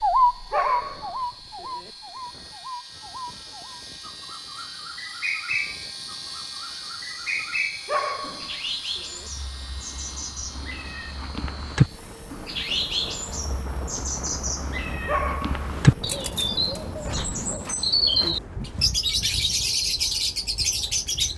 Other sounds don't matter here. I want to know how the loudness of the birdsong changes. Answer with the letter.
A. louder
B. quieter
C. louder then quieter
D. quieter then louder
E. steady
A.